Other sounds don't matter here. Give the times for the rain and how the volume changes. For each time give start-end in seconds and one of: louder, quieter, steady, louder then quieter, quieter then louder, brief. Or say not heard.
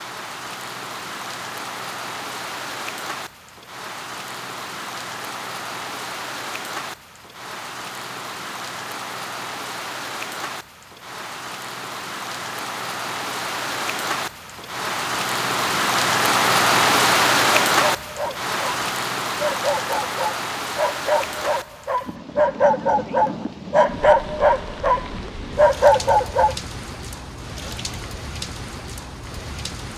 0.0-29.9 louder then quieter.